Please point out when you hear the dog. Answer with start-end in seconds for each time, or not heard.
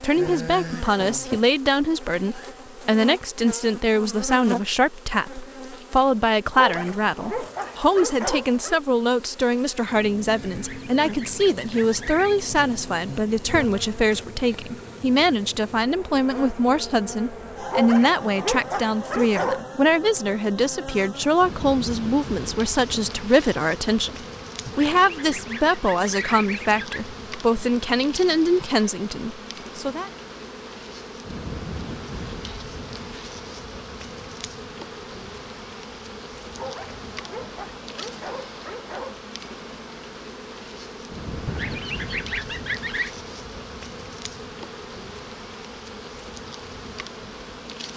6.5-8.8, 17.7-19.6, 36.5-39.2.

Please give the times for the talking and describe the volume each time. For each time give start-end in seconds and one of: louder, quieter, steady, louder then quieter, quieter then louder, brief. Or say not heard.
0.0-30.1 steady.